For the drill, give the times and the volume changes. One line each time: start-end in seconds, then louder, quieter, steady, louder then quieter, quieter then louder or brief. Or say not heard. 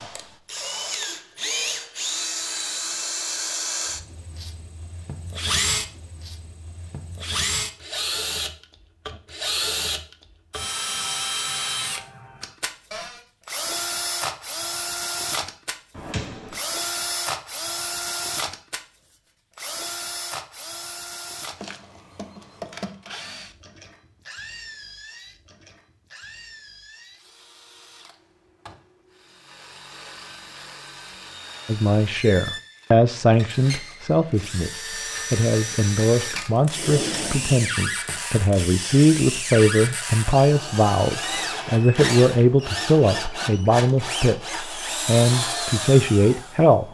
0.0-46.8 quieter then louder.